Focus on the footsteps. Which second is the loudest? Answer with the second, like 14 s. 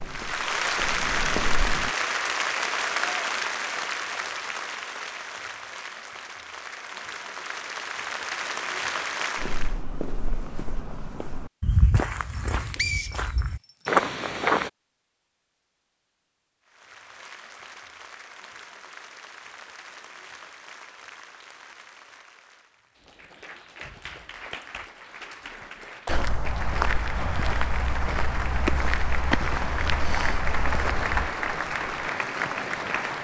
14 s.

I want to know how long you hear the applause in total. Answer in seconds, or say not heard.
26 s.